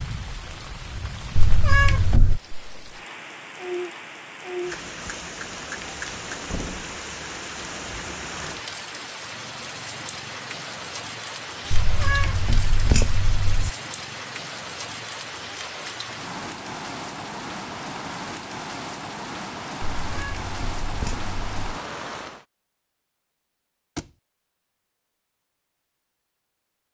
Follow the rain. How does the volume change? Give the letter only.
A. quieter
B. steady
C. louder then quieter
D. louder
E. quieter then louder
B.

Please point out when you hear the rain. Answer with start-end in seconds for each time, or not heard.
0.0-22.4.